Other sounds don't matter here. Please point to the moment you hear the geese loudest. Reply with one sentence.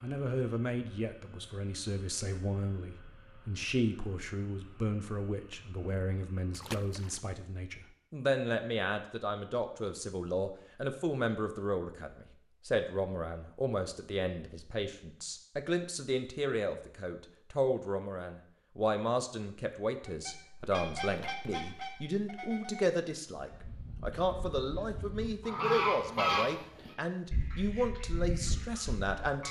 The loudest moment of the geese is at 26 seconds.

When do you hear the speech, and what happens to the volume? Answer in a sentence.
You can hear the speech from 0.0 to 29.4 s, at a steady volume.